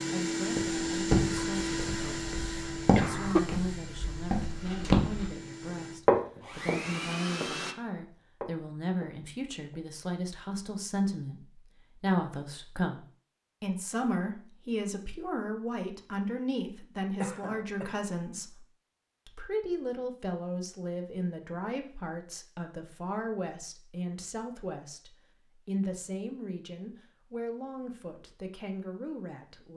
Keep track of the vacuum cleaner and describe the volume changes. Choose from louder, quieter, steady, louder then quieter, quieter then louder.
quieter then louder.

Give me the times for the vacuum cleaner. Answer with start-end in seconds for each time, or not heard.
0.0-7.8.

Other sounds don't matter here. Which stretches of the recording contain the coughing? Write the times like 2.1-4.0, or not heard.
3.0-3.5, 17.2-17.9.